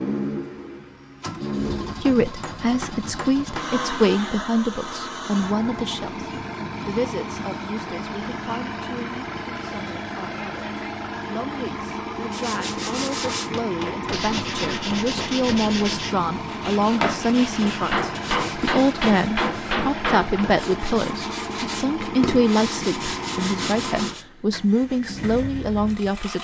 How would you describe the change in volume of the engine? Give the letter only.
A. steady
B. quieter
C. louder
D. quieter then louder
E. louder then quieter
A.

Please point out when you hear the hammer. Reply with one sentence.
The hammer can be heard from 2.0 to 3.8 s, from 13.2 to 15.8 s and from 17.6 to 20.4 s.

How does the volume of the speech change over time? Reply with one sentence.
The loudness of the speech goes down, then up.